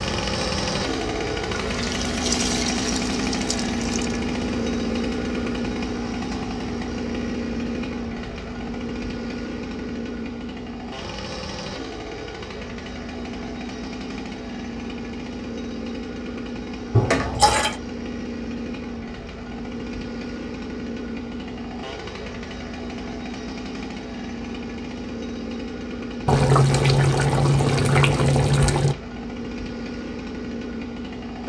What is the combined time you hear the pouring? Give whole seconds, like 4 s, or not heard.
6 s.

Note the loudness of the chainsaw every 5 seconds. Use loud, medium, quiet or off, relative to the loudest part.
loud, loud, medium, medium, medium, medium, medium.